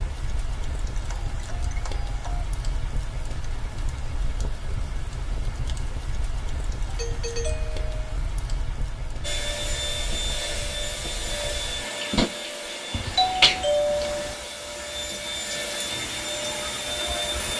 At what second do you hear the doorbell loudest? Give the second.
14 s.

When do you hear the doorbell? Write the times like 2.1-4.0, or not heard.
0.9-2.5, 6.8-8.1, 12.9-14.3.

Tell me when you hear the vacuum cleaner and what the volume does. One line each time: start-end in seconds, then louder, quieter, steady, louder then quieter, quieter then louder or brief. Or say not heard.
9.2-17.5 quieter then louder.